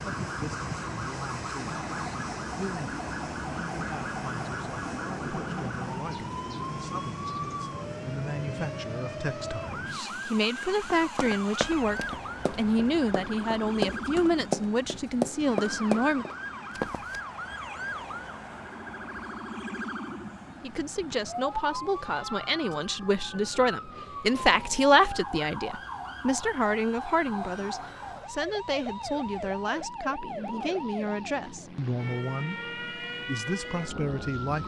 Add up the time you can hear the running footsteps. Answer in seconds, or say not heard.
6 s.